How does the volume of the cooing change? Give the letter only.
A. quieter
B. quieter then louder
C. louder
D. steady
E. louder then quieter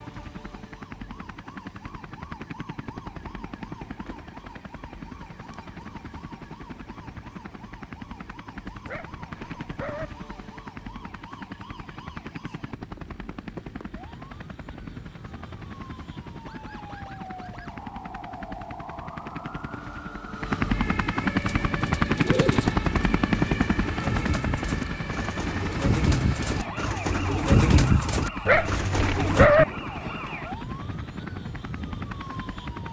C.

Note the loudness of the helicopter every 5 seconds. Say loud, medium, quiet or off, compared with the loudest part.
quiet, quiet, quiet, quiet, loud, medium, quiet.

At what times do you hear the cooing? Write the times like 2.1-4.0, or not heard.
21.4-29.5.